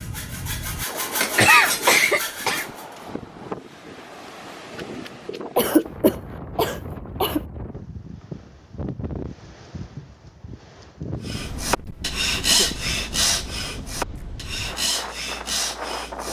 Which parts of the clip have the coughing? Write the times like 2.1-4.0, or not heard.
1.2-2.7, 5.5-7.4, 12.4-12.8.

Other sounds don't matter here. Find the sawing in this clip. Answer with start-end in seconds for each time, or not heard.
0.0-3.1, 11.2-16.2.